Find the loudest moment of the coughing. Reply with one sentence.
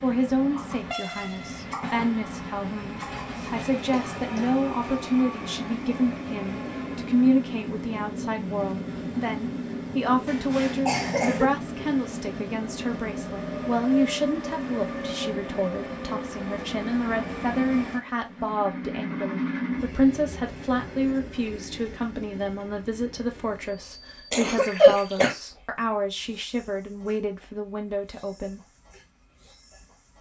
The volume of the coughing peaks at 25 seconds.